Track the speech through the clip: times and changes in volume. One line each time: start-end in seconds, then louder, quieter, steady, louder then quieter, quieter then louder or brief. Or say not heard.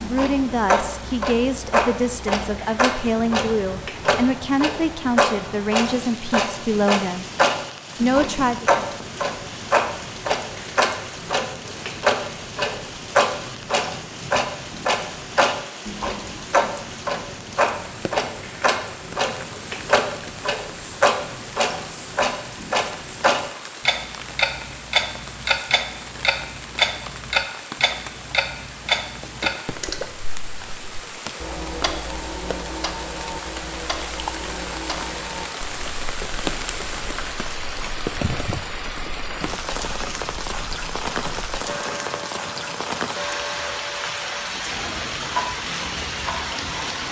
0.0-7.2 steady
8.0-8.7 brief.